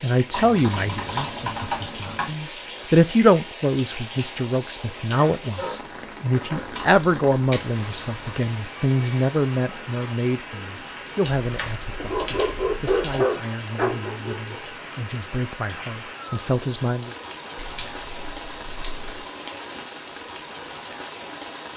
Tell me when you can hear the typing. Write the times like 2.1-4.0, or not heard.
0.3-2.3, 6.6-8.2, 11.2-13.2, 17.6-19.2.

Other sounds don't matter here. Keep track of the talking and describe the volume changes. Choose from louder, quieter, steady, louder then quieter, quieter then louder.
quieter.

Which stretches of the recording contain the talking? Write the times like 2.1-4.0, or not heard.
0.0-17.1.